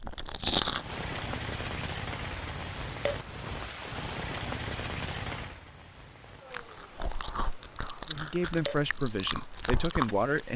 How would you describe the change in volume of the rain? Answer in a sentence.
The volume of the rain goes down.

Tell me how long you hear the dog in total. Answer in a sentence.
The dog can't be heard in this clip.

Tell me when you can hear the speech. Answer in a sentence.
The speech can be heard from 8.1 to 10.5 s.